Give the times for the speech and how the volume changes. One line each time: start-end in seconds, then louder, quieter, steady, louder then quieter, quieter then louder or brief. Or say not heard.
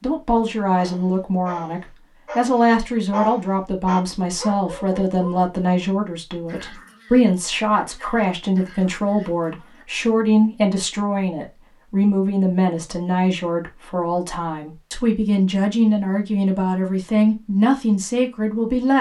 0.0-18.9 steady.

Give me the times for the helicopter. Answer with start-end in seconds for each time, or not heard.
not heard.